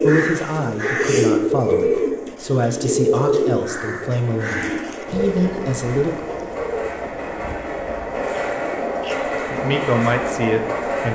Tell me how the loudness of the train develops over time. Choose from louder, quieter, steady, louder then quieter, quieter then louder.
louder.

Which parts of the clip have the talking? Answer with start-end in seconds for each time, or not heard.
0.0-6.2, 9.5-11.1.